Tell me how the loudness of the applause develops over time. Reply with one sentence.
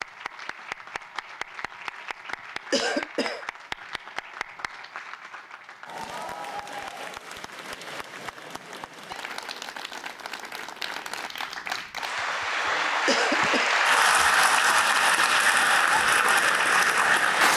The loudness of the applause goes up.